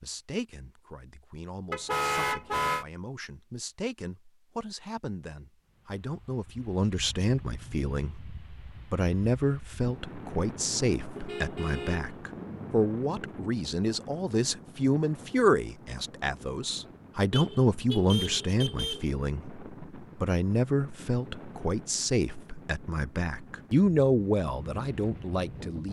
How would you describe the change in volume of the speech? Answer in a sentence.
The loudness of the speech goes up.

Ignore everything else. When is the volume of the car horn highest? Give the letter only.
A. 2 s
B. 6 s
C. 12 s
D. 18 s
A.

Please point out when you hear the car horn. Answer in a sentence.
The car horn can be heard from 1.7 to 2.9 s, from 11.2 to 12.8 s and from 17.3 to 19.1 s.